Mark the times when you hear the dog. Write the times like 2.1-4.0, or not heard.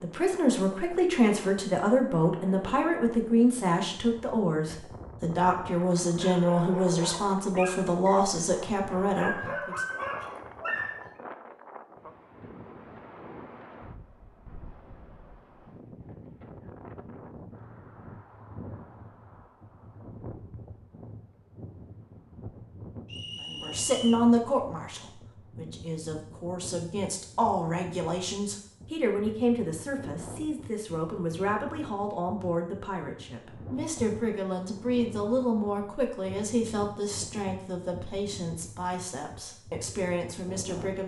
6.0-11.1.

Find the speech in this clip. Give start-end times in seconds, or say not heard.
0.0-9.8, 23.4-41.0.